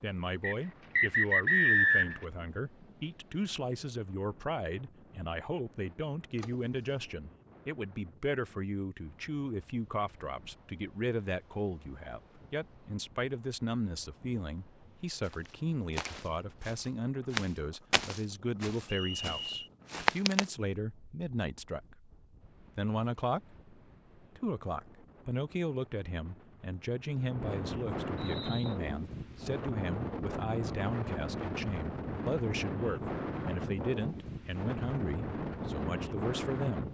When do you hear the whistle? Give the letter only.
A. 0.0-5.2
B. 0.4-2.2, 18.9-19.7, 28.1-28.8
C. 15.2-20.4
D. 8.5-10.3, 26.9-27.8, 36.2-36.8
B.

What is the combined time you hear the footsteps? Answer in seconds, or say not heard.
5 s.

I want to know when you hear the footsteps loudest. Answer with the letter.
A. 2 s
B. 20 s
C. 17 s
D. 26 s
B.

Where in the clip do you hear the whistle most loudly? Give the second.
2 s.